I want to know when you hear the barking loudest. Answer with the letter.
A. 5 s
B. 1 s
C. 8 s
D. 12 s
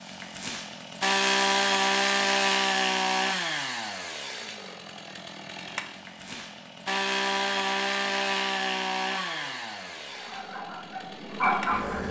D.